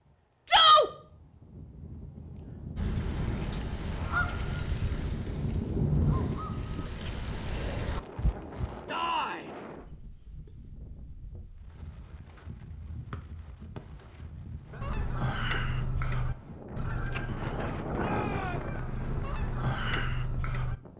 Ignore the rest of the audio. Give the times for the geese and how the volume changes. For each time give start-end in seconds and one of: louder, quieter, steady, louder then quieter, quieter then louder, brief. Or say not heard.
2.8-8.9 quieter then louder
14.8-20.8 quieter then louder.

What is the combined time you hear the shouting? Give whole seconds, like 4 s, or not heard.
2 s.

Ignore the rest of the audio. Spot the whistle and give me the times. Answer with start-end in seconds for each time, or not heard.
13.1-13.8.